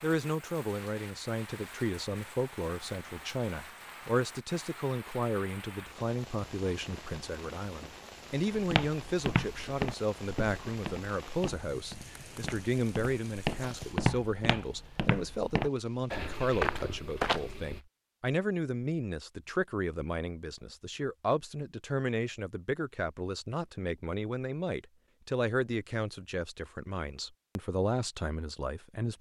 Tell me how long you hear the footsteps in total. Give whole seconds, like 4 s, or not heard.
9 s.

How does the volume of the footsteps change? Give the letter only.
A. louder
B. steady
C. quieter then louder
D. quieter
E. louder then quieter
C.